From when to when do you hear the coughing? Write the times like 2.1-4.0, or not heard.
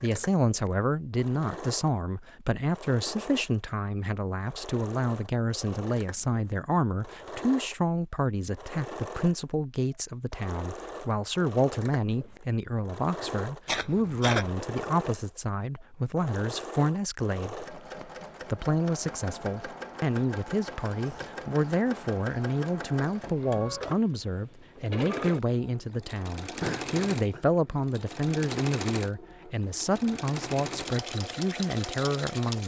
13.7-14.5, 26.6-27.4.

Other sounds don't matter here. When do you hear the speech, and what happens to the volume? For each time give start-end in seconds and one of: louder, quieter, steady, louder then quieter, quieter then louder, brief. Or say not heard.
0.0-17.6 steady
18.4-32.6 steady.